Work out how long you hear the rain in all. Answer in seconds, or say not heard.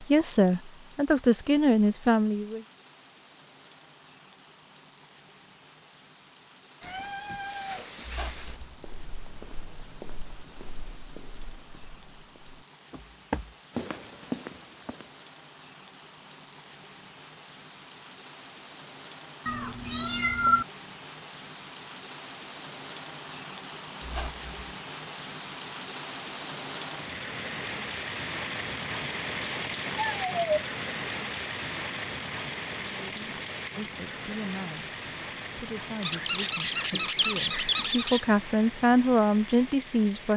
40 s.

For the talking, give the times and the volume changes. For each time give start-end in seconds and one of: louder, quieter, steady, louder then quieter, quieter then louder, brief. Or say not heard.
0.0-2.6 brief
32.8-40.3 louder.